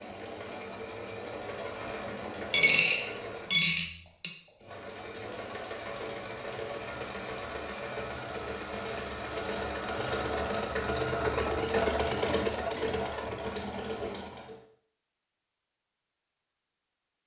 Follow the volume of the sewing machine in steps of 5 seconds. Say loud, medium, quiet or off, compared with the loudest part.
medium, medium, loud, off.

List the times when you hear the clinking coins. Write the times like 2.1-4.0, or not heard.
2.5-4.3.